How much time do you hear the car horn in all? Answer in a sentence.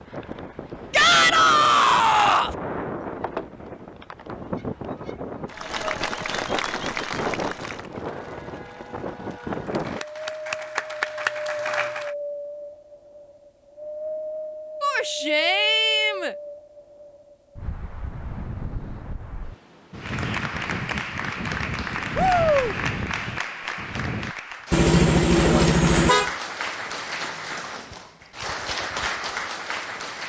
The car horn can be heard for 2 seconds in total.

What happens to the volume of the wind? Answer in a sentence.
The volume of the wind stays about the same.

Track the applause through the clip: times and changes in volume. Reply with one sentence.
You can hear the applause from 5.5 to 12.2 s, getting quieter then louder; and from 19.9 to 30.2 s, at a steady volume.